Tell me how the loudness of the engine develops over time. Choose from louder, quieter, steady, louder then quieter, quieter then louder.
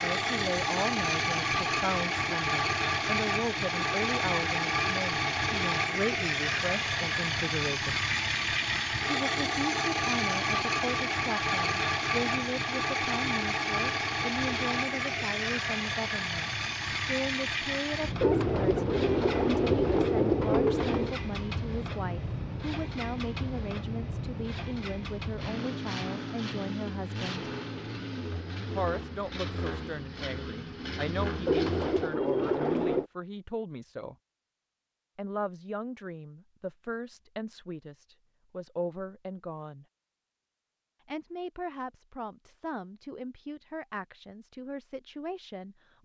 quieter.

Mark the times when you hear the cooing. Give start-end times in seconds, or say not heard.
18.2-21.1, 31.4-33.0.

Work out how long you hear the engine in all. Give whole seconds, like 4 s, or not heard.
32 s.